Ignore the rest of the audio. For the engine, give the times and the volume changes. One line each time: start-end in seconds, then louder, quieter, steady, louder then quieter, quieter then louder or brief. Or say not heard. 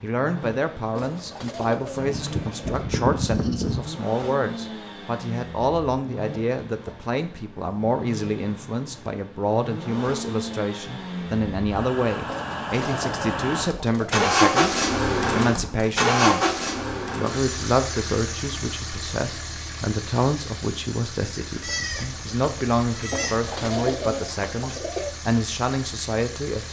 0.0-26.6 louder then quieter.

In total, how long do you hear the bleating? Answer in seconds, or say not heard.
4 s.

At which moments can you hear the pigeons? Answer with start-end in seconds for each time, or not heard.
0.9-2.9, 12.2-14.2, 23.1-25.1.